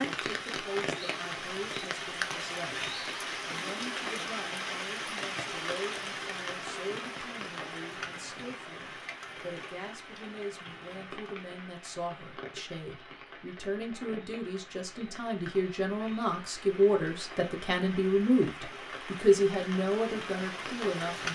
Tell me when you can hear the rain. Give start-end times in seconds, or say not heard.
0.0-21.2.